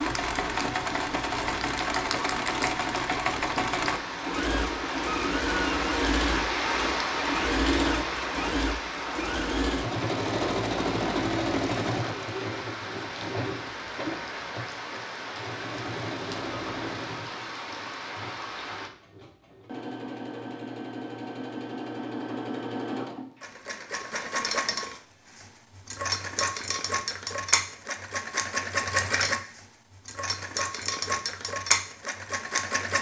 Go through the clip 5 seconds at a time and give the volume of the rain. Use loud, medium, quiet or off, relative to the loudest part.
medium, loud, medium, medium, off, off, off.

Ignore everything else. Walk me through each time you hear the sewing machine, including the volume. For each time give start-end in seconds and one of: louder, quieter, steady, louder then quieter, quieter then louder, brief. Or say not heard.
0.0-32.9 quieter then louder.